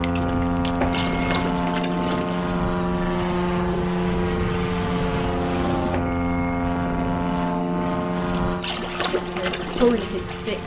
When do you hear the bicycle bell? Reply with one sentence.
You can hear the bicycle bell from 0.8 to 1.4 s and from 5.9 to 6.7 s.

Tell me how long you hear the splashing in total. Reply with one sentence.
The splashing can be heard for 5 seconds in total.